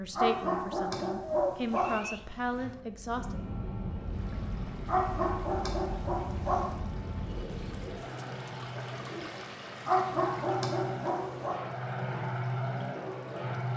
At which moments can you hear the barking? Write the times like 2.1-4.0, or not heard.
0.1-2.0, 4.8-6.8, 9.8-11.6.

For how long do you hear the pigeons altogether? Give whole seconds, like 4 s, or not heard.
4 s.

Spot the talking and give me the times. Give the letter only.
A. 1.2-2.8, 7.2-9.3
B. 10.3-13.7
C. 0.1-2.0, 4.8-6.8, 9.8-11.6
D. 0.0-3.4
D.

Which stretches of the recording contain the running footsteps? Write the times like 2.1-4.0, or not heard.
not heard.